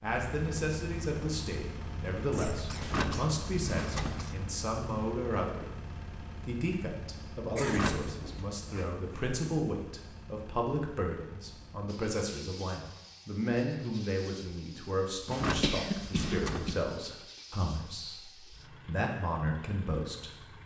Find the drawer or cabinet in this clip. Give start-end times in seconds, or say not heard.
2.8-4.3, 7.6-8.3, 15.2-16.9.